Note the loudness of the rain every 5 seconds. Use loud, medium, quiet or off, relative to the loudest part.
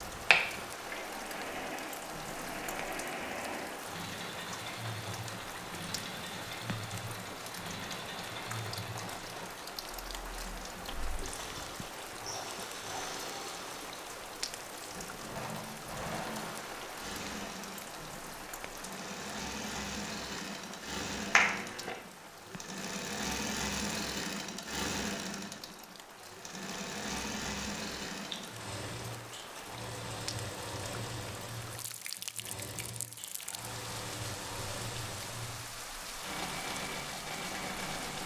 loud, loud, loud, loud, medium, medium, loud, loud.